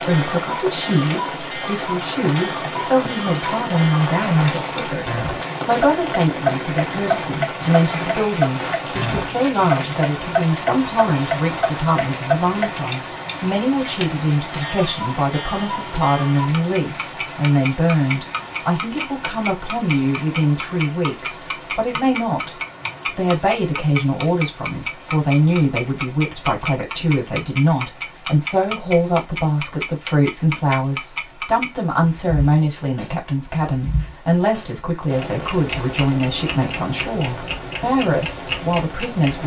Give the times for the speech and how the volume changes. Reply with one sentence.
You can hear the speech from 0.0 to 39.4 s, at a steady volume.